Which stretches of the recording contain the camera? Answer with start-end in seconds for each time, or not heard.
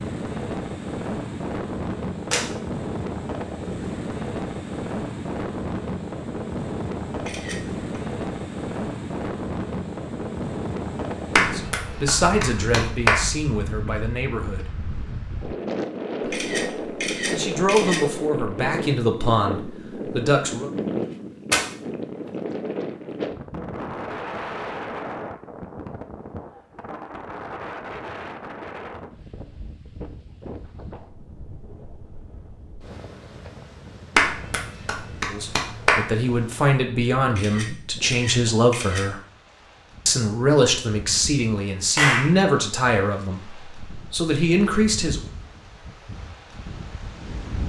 7.2-7.8, 16.2-18.1, 37.2-39.1.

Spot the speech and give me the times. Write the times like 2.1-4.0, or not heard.
11.5-14.8, 17.2-20.7, 35.3-39.2, 40.0-45.2.